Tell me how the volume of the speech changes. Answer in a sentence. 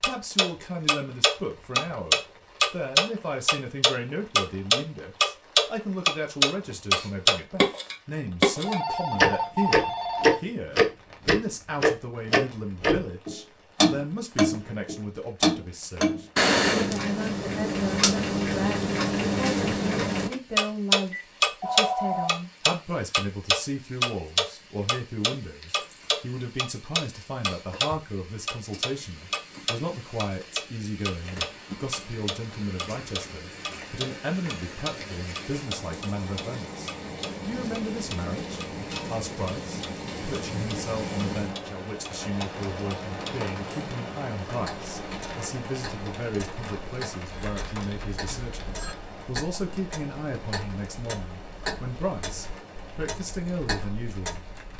The loudness of the speech stays about the same.